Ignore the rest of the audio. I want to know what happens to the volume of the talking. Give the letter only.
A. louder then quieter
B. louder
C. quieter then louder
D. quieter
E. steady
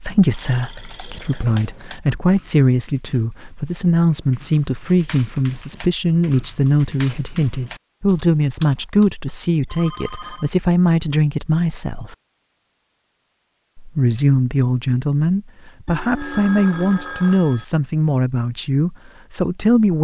E.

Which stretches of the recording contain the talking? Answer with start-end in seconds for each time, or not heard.
0.0-12.2, 13.8-20.0.